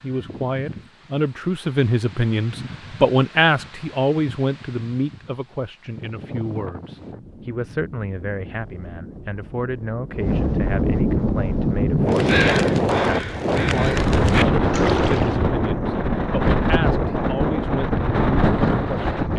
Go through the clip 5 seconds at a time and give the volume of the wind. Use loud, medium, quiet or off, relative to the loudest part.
quiet, quiet, loud, loud.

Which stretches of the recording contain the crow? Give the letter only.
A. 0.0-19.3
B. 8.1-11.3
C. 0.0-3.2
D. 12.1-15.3
D.